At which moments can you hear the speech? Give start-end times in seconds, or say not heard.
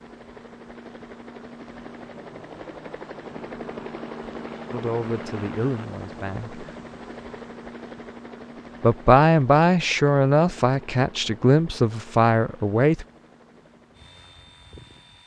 4.7-6.5, 8.8-13.1.